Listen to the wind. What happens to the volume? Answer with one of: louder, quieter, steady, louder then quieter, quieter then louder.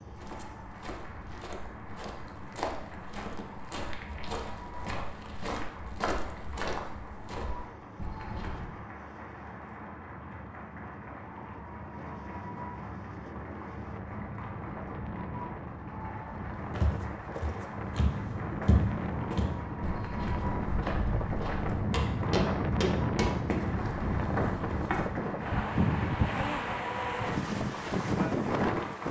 louder.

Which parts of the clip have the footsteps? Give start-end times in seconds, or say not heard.
0.0-8.7, 16.7-25.1.